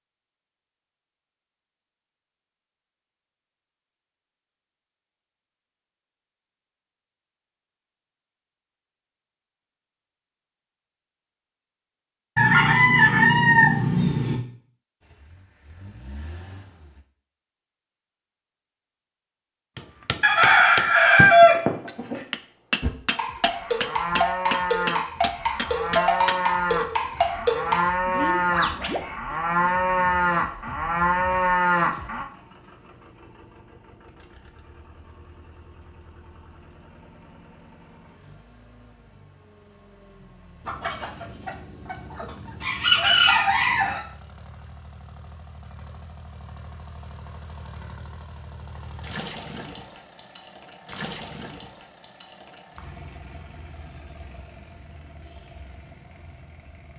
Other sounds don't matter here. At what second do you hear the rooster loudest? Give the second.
21 s.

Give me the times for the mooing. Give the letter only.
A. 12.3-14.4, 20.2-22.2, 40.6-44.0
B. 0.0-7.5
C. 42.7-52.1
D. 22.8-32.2
D.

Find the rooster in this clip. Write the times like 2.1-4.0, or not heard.
12.3-14.4, 20.2-22.2, 40.6-44.0.